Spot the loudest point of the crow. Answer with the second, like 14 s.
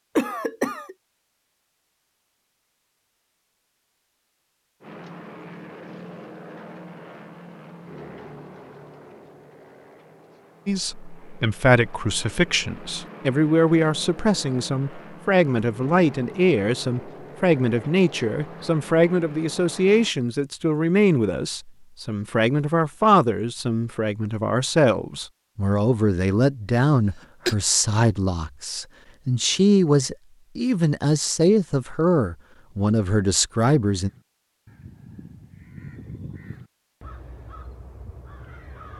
36 s.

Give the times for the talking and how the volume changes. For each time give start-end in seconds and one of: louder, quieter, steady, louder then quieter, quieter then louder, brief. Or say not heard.
10.7-34.1 steady.